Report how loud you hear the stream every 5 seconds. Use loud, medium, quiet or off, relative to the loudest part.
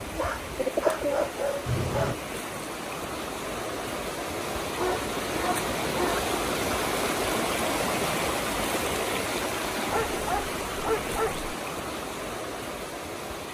medium, loud, medium.